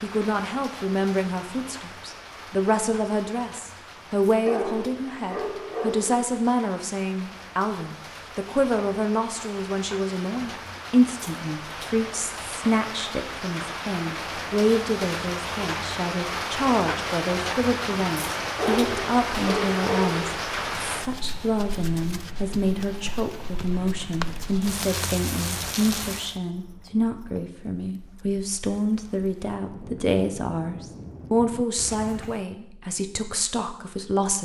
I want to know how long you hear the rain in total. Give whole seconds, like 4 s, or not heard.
26 s.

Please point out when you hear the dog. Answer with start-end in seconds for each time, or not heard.
4.5-6.2, 18.6-20.4.